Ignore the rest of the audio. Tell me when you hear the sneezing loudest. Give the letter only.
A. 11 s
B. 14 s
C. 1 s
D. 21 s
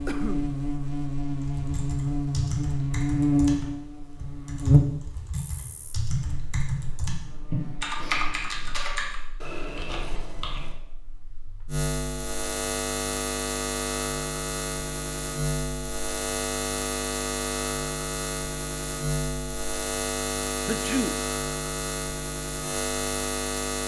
D.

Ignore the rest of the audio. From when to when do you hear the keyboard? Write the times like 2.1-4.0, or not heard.
1.3-10.8.